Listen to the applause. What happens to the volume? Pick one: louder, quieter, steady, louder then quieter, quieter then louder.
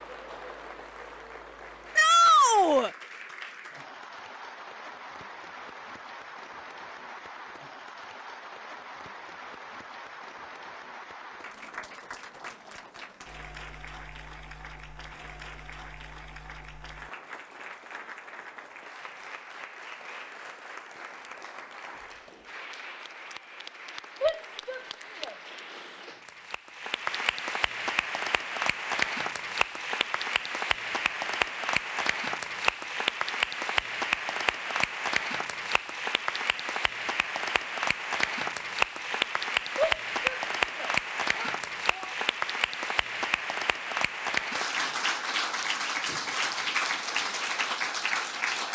louder.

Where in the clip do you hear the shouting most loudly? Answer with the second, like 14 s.
2 s.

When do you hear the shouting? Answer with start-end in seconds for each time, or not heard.
1.9-2.9, 24.2-25.4, 39.8-42.1.